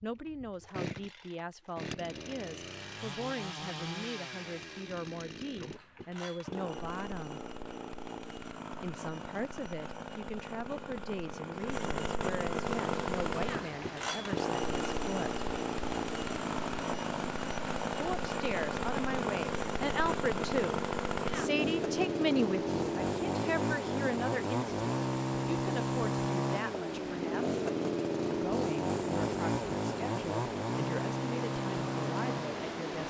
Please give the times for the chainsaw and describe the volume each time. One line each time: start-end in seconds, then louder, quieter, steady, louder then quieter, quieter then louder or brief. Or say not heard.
0.0-33.0 louder.